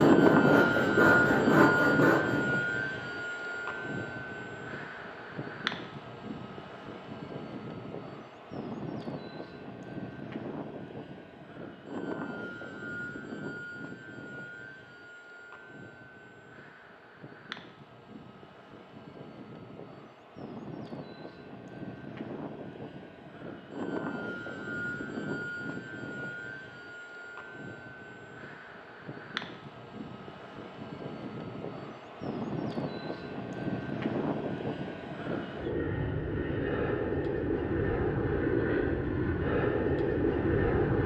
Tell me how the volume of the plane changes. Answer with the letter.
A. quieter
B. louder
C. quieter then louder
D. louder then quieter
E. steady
C.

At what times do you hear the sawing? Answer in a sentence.
You can hear the sawing from 0.0 to 2.5 s.